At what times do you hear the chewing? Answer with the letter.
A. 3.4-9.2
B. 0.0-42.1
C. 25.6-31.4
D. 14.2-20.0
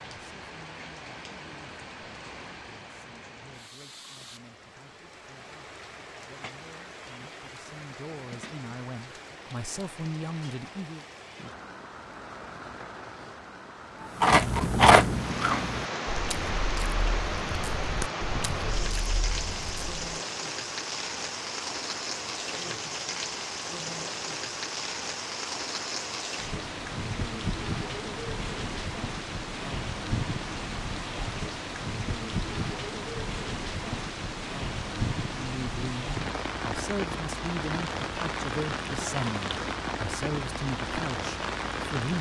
D.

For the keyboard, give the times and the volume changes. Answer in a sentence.
You can't hear the keyboard here.